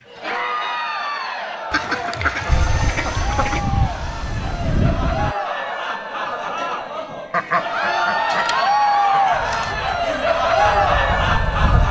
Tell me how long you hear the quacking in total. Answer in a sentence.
You can hear the quacking for 4 seconds altogether.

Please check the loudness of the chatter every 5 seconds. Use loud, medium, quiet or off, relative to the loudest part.
medium, loud, loud.